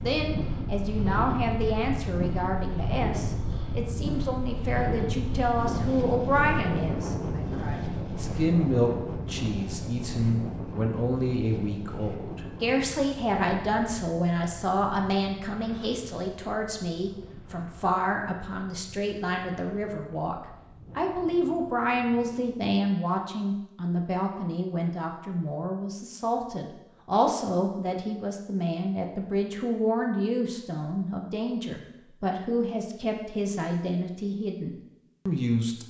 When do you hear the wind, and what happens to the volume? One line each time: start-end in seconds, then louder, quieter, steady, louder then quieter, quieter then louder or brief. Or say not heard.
0.0-22.8 quieter.